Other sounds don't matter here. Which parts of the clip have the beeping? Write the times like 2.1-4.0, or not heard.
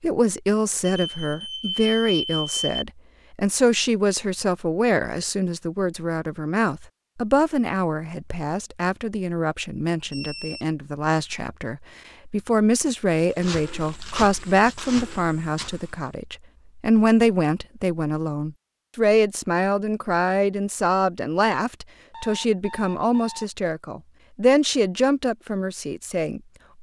0.9-2.9, 10.1-10.7, 22.1-23.4.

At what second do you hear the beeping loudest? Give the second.
2 s.